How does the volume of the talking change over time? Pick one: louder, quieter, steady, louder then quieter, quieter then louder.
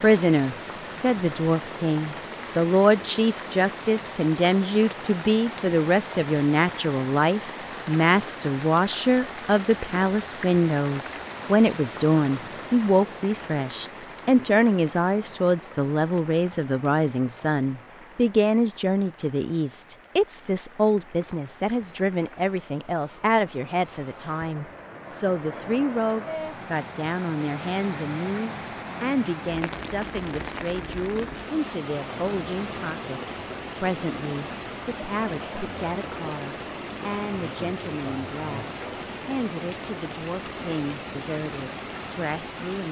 quieter.